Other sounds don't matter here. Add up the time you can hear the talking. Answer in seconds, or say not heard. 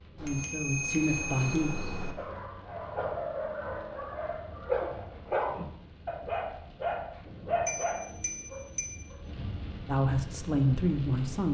3 s.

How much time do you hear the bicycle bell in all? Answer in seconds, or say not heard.
3 s.